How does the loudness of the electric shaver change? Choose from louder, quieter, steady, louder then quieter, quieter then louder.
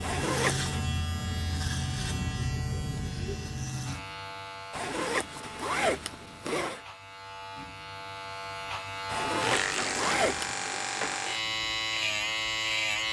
quieter then louder.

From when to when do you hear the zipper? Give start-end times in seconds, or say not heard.
0.0-0.8, 4.7-6.8, 9.1-10.6.